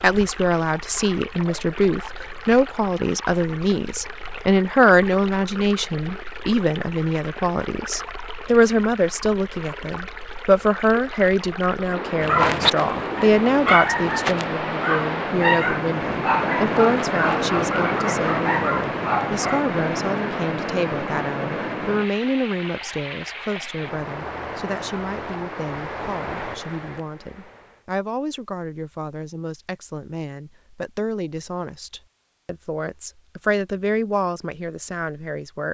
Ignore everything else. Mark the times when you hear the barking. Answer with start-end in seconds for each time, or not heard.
12.2-19.6.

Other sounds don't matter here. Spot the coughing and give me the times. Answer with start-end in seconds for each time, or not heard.
not heard.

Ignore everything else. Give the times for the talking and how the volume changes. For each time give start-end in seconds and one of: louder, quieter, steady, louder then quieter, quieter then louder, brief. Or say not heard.
0.0-35.6 quieter.